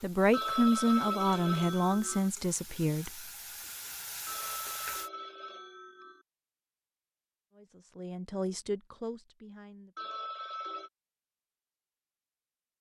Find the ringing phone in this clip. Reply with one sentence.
The ringing phone can be heard from 0.3 to 2.3 s, from 4.2 to 6.2 s and from 9.9 to 10.9 s.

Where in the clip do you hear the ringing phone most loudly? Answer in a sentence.
The volume of the ringing phone peaks at 1 second.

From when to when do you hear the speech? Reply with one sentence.
The speech can be heard from 0.0 to 3.2 s and from 7.5 to 9.9 s.